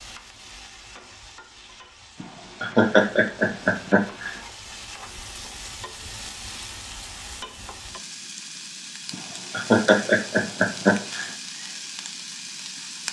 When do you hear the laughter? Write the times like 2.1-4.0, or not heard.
2.2-4.4, 9.1-11.3.